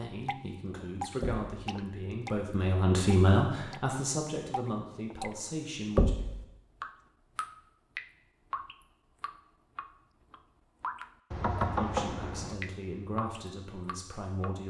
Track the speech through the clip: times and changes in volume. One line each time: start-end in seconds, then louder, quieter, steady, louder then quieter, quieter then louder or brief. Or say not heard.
0.0-6.2 louder then quieter
11.8-14.6 brief.